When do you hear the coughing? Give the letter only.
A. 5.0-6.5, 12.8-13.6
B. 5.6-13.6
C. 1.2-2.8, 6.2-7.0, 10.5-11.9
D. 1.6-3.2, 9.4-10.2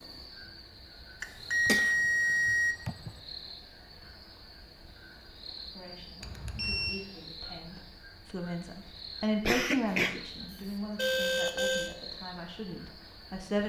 D.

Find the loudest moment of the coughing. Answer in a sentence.
The volume of the coughing peaks at 10 seconds.